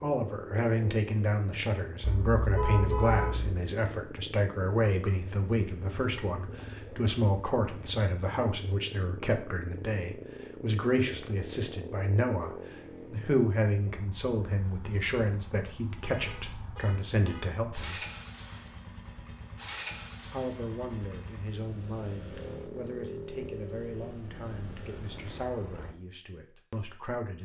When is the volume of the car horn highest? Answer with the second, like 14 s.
3 s.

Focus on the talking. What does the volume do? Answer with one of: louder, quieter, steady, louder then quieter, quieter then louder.
quieter.